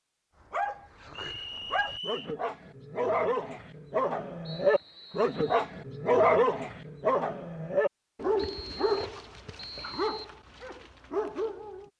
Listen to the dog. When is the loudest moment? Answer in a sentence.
The volume of the dog peaks at 6 seconds.